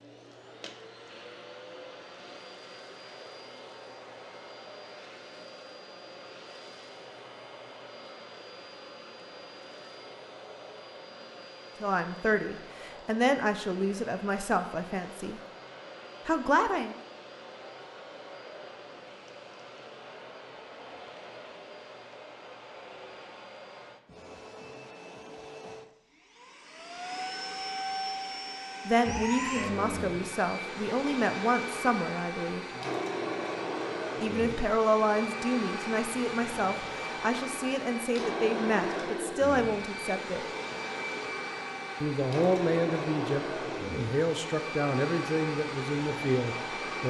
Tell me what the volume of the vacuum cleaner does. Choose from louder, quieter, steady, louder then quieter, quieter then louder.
louder.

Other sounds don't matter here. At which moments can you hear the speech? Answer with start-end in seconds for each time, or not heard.
11.8-15.4, 16.2-16.9, 28.9-32.6, 34.2-40.5, 42.0-47.0.